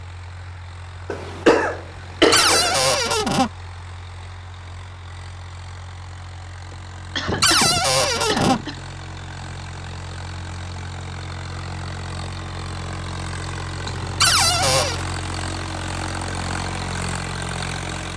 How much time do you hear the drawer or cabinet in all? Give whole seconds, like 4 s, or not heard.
3 s.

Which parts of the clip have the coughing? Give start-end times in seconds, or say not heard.
1.1-3.0, 6.7-8.8, 13.8-14.7.